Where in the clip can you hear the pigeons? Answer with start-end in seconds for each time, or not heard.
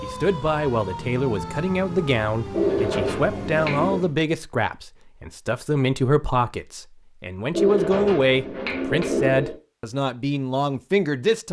2.5-4.0, 7.5-9.6.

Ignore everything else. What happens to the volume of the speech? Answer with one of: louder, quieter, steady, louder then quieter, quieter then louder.
steady.